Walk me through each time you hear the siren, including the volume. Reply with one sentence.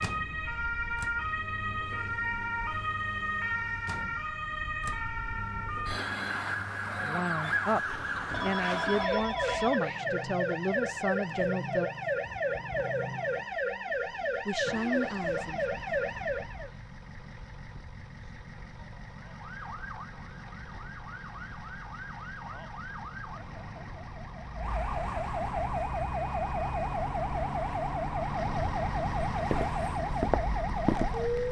The siren can be heard from 0.0 to 16.7 s, at a steady volume; and from 19.1 to 31.4 s, getting louder.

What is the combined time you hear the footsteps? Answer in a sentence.
You can hear the footsteps for 2 seconds altogether.